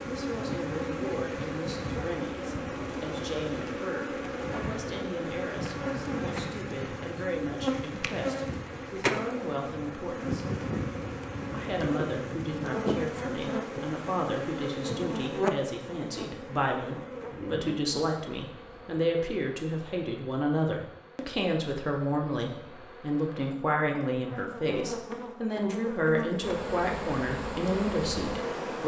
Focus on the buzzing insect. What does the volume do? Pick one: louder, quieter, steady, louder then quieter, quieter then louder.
quieter then louder.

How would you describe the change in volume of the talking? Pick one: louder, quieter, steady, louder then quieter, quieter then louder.
louder.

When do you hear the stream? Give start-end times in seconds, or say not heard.
not heard.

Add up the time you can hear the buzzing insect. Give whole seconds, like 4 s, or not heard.
29 s.